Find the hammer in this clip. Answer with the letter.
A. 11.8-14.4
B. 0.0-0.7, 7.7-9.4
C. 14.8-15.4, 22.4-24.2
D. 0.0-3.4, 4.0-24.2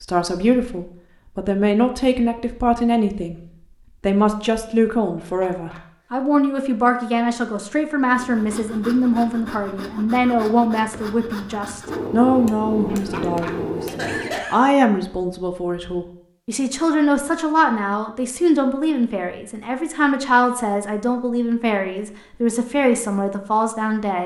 A.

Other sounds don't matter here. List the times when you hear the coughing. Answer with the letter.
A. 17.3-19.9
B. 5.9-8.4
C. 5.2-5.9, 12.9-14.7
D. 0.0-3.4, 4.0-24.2
C.